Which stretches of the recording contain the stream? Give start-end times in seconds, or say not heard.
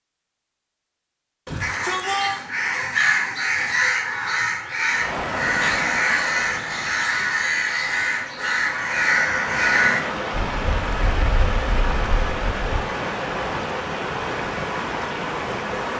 4.8-15.9.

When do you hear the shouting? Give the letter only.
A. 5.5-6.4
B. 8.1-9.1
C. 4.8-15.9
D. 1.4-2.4
D.